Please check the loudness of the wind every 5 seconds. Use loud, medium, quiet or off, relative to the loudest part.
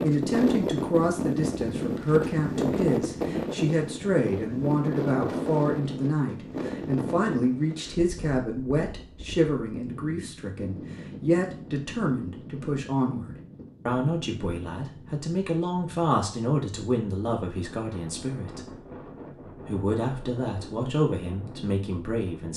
loud, medium, quiet, quiet, quiet.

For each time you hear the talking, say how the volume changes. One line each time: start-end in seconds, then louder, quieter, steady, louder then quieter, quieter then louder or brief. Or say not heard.
0.0-18.7 steady
19.6-22.5 brief.